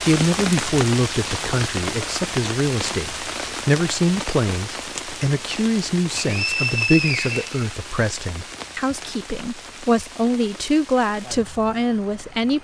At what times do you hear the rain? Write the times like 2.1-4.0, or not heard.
0.0-12.5.